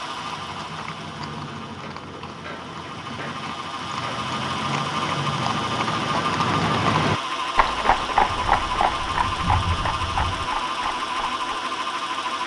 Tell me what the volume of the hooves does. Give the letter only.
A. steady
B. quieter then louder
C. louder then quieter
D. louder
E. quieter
C.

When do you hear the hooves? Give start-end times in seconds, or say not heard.
0.0-11.4.